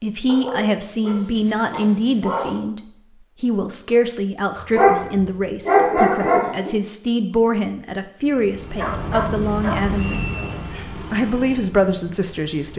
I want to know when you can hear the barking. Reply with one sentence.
The barking can be heard from 0.2 to 2.5 s, from 4.5 to 6.8 s and from 8.8 to 9.8 s.